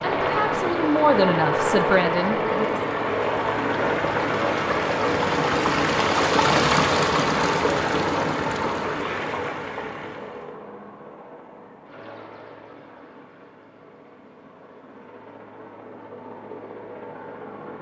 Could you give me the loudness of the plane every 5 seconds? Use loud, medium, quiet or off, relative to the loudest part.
loud, medium, quiet, quiet.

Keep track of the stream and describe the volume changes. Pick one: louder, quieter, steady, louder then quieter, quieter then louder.
louder then quieter.